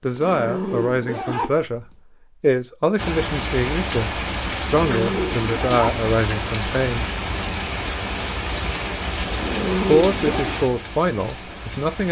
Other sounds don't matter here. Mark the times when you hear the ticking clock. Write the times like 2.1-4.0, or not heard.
not heard.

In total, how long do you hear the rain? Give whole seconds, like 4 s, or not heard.
9 s.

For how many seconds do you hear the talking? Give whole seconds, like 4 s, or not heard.
9 s.